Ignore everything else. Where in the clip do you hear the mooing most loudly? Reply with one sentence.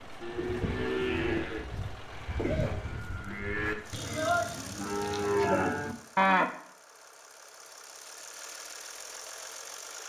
The loudest moment of the mooing is at 6 seconds.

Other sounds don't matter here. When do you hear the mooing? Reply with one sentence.
You can hear the mooing from 0.2 to 6.5 s.